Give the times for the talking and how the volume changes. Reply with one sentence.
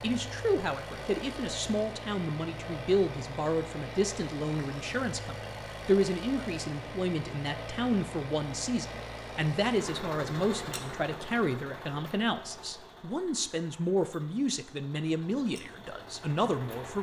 You can hear the talking from 0.0 to 16.9 s, at a steady volume.